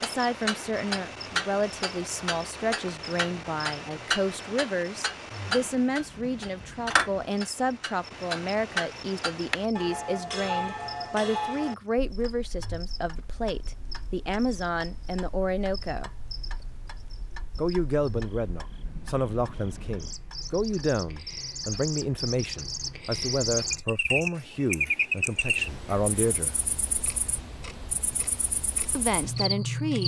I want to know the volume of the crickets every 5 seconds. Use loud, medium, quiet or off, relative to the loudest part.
quiet, quiet, quiet, quiet, loud, loud.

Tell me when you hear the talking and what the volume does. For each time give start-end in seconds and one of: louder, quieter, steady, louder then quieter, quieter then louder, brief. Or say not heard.
0.0-16.1 steady
17.6-26.6 steady
28.9-30.0 brief.